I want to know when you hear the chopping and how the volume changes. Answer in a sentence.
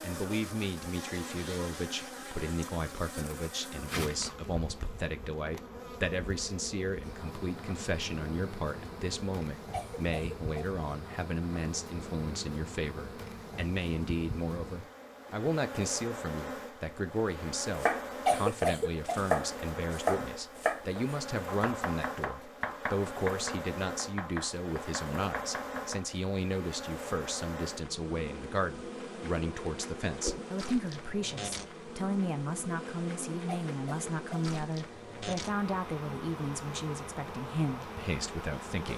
You can hear the chopping from 17.8 to 26.1 s, getting quieter.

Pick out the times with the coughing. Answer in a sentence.
You can hear the coughing from 9.7 to 10.7 s, from 18.2 to 19.2 s and from 33.5 to 34.5 s.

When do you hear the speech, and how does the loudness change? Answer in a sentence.
You can hear the speech from 0.0 to 38.9 s, at a steady volume.